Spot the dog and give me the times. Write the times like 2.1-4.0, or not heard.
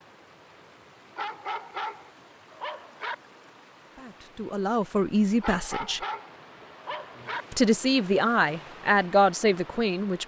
1.1-3.1, 5.4-7.5.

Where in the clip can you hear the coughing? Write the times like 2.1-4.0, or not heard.
not heard.